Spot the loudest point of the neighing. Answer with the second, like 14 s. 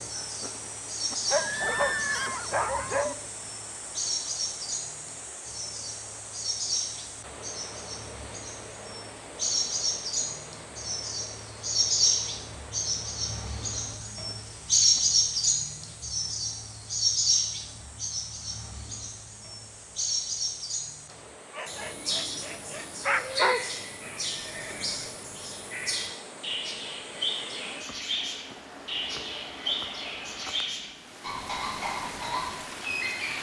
2 s.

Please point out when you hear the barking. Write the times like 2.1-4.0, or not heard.
1.2-3.1, 21.6-23.7.